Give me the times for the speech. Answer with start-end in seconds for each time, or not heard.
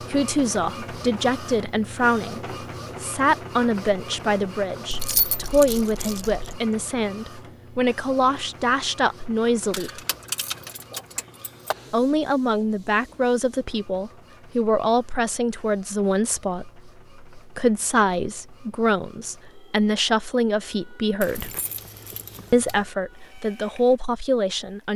0.0-10.0, 11.9-21.6, 22.5-24.9.